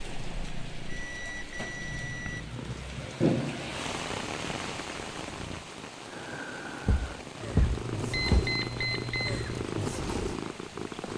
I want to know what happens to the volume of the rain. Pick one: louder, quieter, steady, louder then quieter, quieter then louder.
louder then quieter.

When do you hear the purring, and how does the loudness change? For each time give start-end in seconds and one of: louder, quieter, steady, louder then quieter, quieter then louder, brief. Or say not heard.
0.0-11.1 louder.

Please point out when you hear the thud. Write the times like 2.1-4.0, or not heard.
6.8-8.5.